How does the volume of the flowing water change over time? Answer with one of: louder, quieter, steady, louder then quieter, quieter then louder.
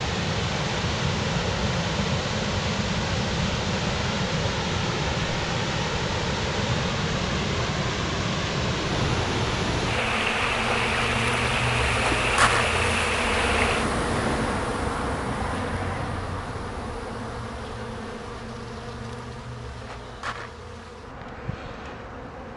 steady.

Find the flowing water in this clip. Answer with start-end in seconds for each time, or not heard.
0.0-14.8.